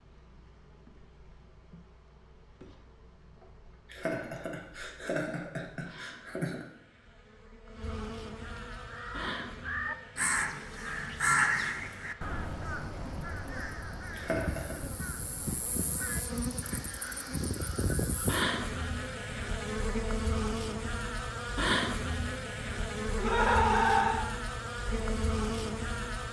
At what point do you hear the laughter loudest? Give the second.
24 s.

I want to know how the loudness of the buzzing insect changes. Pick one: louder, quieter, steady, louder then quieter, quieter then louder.
louder.